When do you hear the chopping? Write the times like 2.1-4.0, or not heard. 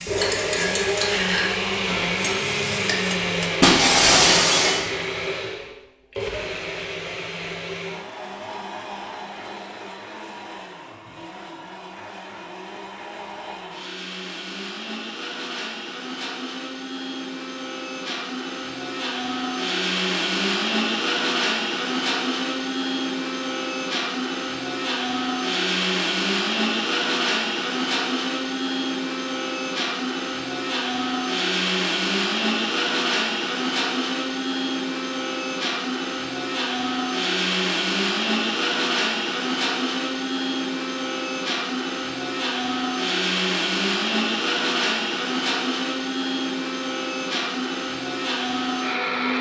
not heard.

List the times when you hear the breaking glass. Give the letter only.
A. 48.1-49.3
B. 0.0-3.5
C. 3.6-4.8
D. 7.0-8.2
C.